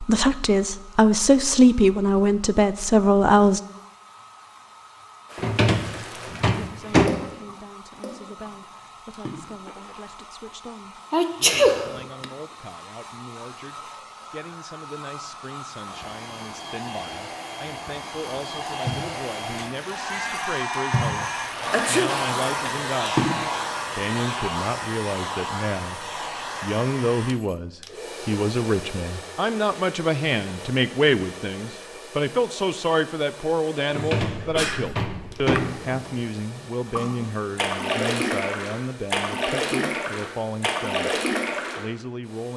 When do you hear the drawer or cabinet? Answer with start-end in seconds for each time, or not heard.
5.3-7.2, 33.9-36.2.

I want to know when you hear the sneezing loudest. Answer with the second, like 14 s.
12 s.